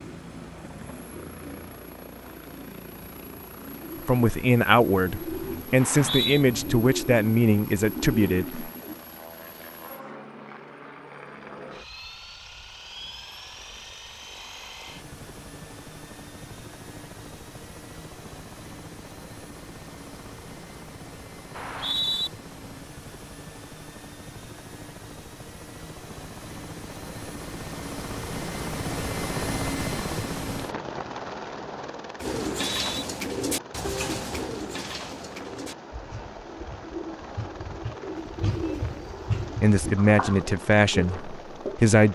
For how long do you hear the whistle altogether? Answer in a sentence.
The whistle can be heard for 2 seconds in total.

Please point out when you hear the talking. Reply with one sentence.
The talking can be heard from 4.0 to 8.6 s and from 39.6 to 42.0 s.